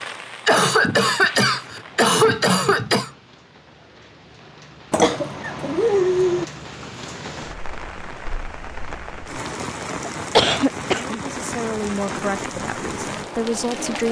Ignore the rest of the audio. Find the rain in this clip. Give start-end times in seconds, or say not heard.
0.0-14.0.